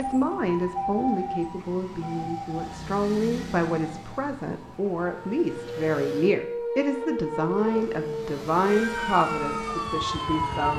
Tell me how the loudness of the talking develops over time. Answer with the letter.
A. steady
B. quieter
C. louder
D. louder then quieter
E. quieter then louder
A.